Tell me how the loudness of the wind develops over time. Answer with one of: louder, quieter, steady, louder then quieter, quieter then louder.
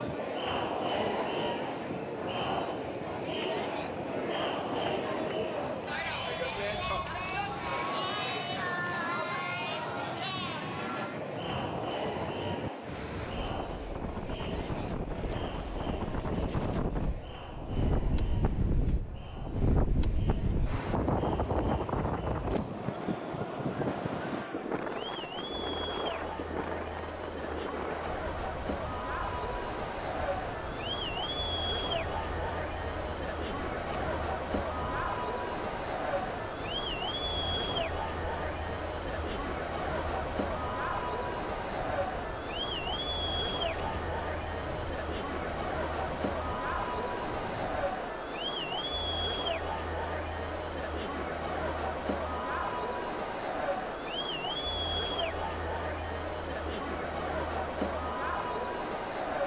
louder then quieter.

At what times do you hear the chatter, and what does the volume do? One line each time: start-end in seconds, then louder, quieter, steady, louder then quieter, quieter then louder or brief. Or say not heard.
0.0-59.4 quieter then louder.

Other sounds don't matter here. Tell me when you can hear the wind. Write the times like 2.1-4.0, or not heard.
0.0-47.9.